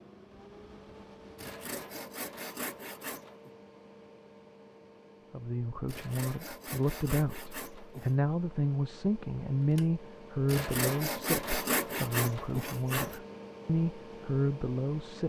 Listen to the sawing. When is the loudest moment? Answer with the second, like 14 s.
12 s.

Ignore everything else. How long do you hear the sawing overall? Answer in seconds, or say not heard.
7 s.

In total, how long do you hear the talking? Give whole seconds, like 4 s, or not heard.
10 s.